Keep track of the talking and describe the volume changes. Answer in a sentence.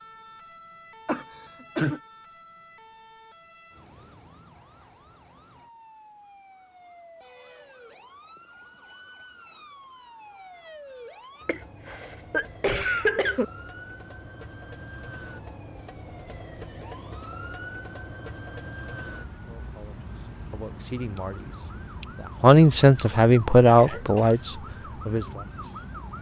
The loudness of the talking goes up, then down.